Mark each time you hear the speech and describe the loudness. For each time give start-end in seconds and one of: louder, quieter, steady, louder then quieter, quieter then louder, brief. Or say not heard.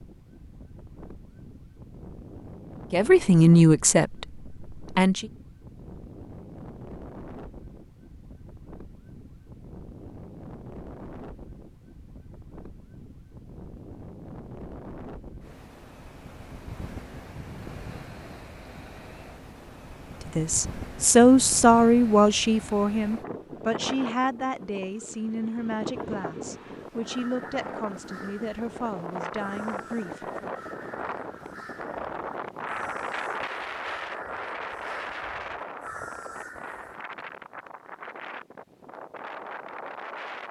2.9-5.3 brief
20.4-30.5 quieter.